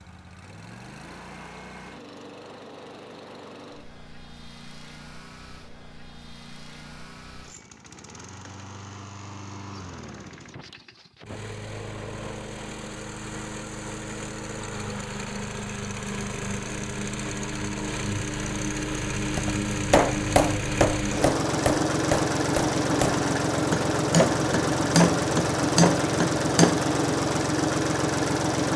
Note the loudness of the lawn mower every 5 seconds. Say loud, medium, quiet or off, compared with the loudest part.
quiet, quiet, quiet, medium, loud, loud.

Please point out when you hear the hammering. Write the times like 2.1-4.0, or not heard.
19.4-26.9.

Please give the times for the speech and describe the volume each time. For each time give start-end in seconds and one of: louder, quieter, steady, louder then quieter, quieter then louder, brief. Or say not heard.
not heard.